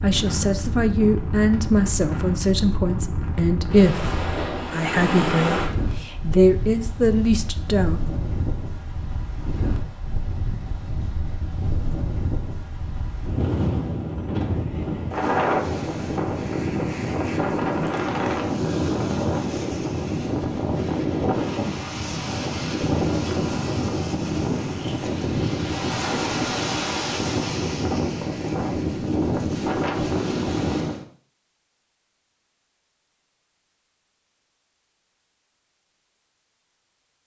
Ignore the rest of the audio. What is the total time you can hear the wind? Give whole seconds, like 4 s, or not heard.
31 s.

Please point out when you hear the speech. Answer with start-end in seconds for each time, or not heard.
0.0-8.0.